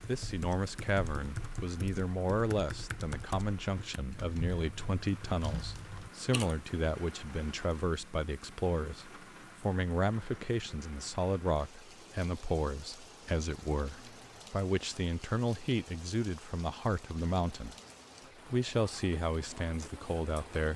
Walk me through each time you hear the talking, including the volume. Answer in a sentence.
The talking can be heard from 0.1 to 17.8 s, at a steady volume; and briefly from 18.4 to 20.7 s.